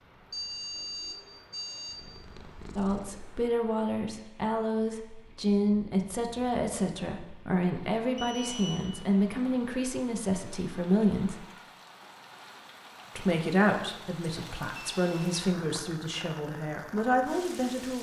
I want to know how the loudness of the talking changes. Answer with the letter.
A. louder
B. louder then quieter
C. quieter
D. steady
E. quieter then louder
D.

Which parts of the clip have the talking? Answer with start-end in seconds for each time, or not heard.
2.8-11.4, 13.2-17.9.